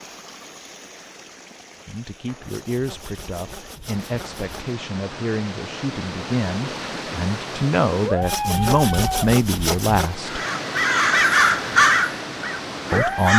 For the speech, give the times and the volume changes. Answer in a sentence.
You can hear the speech from 1.9 to 10.4 s, getting louder; and briefly from 12.9 to 13.3 s.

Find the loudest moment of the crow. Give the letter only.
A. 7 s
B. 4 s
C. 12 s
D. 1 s
C.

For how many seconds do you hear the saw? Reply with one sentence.
The saw can be heard for 4 seconds in total.